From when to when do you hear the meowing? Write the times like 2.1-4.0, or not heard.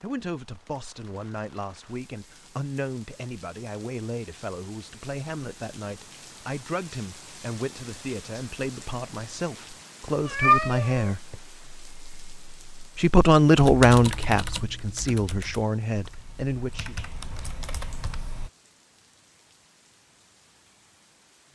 10.1-11.3.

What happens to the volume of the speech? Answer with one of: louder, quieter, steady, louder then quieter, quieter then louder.
louder then quieter.